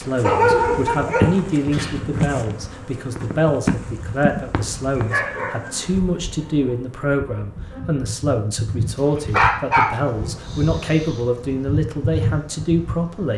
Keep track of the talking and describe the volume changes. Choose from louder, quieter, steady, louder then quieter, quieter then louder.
steady.